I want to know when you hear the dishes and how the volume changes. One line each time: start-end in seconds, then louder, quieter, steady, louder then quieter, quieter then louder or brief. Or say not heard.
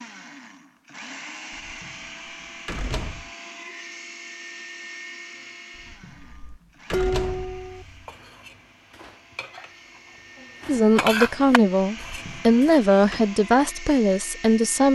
6.2-12.8 quieter then louder.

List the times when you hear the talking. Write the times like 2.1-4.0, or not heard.
10.7-14.9.